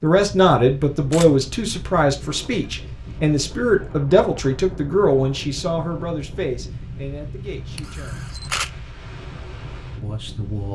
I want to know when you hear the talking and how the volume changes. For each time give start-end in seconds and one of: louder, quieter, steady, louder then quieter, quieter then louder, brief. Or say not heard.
0.0-8.3 quieter
10.0-10.7 brief.